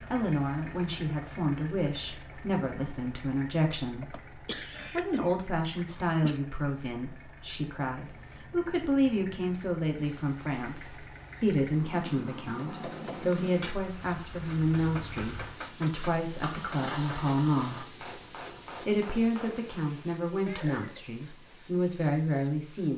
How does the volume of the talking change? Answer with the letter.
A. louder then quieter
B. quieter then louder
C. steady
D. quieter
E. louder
C.